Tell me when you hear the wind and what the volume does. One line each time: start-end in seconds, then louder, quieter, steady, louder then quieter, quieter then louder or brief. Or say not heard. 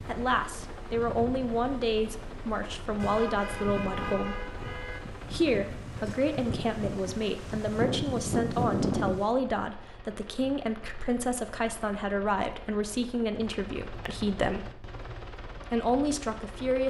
0.0-9.2 louder.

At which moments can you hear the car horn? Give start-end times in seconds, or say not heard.
3.0-5.0.